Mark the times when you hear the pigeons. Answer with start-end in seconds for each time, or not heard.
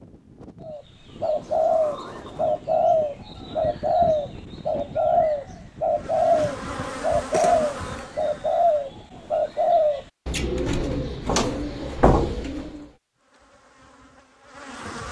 0.6-12.8.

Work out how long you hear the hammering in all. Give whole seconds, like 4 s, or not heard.
not heard.